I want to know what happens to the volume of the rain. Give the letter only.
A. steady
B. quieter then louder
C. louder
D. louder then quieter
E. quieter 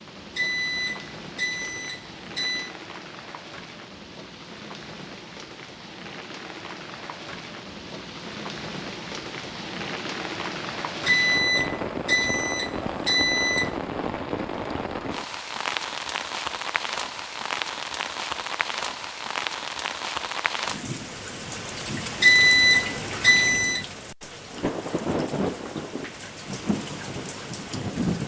C.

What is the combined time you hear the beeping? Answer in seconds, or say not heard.
7 s.